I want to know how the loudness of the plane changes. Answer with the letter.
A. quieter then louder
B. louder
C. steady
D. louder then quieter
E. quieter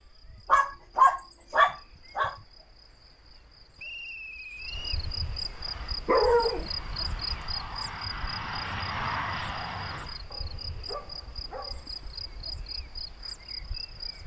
B.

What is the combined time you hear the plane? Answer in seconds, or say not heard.
5 s.